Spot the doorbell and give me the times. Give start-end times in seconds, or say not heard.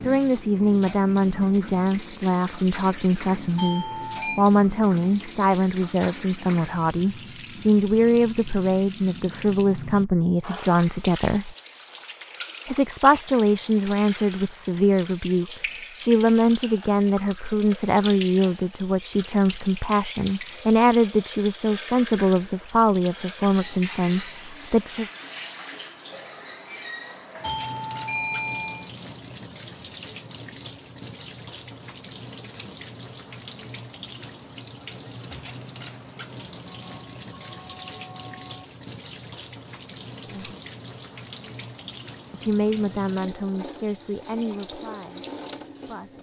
3.5-4.4, 27.4-28.9, 36.6-38.6.